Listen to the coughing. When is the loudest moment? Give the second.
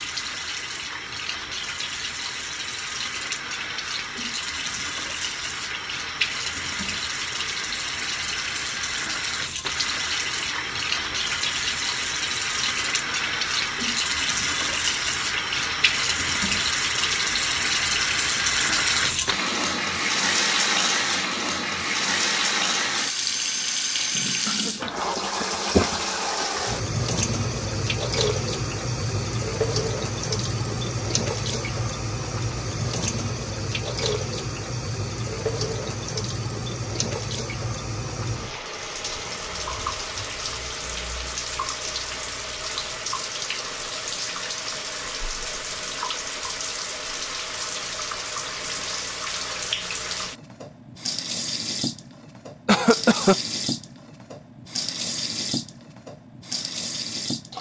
53 s.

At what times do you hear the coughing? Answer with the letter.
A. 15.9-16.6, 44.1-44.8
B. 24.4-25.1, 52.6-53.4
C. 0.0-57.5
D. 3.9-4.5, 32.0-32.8
B.